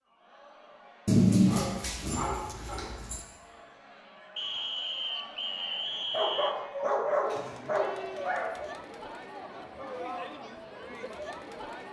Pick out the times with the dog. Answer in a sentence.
You can hear the dog from 1.1 to 3.2 s and from 6.1 to 8.5 s.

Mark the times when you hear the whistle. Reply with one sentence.
You can hear the whistle from 4.3 to 6.5 s.